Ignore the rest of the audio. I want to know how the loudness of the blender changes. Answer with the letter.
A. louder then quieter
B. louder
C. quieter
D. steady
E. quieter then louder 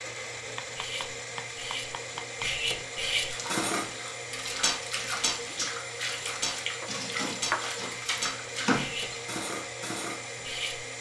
D.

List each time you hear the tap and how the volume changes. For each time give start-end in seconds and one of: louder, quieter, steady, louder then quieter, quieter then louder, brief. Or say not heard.
3.1-9.2 louder.